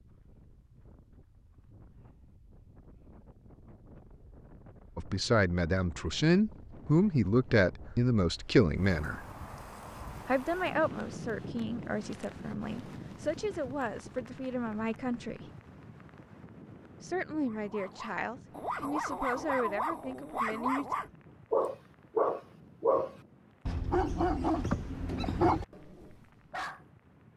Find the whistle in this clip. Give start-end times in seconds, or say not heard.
not heard.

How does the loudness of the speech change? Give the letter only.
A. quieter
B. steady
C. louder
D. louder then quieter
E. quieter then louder
A.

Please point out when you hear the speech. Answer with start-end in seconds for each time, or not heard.
5.0-9.2, 10.2-15.5, 17.0-20.9.